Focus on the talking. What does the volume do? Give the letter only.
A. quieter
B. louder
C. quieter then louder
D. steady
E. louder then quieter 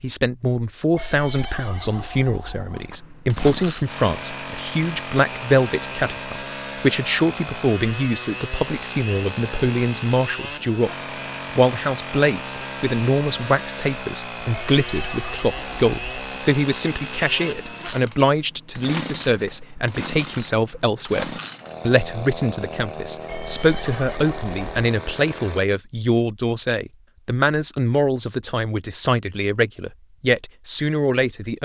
D.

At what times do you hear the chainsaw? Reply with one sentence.
The chainsaw can be heard from 2.8 to 25.6 s.